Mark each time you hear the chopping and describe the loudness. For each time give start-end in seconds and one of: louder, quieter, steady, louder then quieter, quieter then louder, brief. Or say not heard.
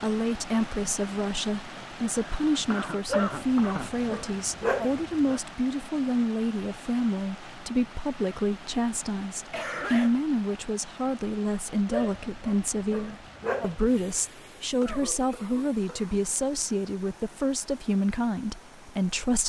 not heard.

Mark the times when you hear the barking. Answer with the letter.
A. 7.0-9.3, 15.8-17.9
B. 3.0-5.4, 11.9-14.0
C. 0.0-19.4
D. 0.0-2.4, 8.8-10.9
B.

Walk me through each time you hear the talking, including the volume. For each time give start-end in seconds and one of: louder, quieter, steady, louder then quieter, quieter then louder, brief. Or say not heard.
0.0-19.4 steady.